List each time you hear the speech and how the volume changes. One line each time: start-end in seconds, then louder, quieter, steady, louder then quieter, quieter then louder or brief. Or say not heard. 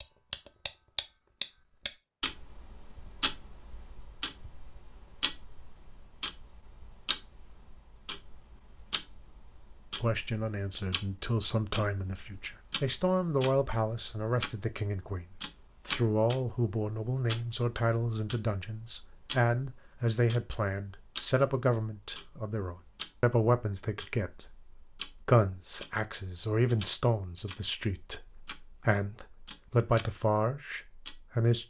10.0-31.6 steady.